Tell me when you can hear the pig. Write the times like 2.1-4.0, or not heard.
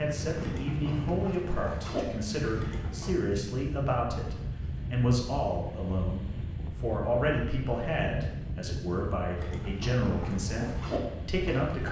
0.1-3.1, 9.3-11.8.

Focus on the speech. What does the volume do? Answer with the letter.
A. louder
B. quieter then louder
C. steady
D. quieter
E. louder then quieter
C.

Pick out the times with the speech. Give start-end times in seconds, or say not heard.
0.0-11.8.